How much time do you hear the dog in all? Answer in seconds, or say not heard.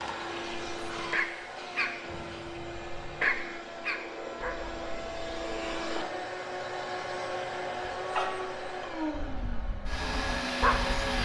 8 s.